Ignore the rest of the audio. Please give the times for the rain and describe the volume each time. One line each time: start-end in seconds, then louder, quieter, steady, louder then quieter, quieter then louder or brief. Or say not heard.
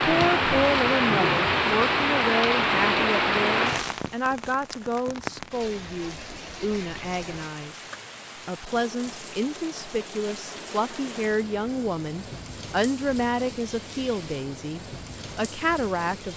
0.0-16.3 quieter.